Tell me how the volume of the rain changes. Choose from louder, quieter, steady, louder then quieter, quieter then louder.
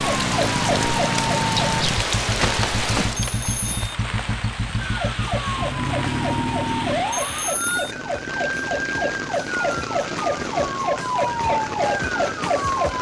quieter.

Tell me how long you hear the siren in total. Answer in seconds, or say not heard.
10 s.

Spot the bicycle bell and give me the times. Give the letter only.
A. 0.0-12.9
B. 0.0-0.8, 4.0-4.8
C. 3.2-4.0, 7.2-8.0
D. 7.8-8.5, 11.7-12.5
C.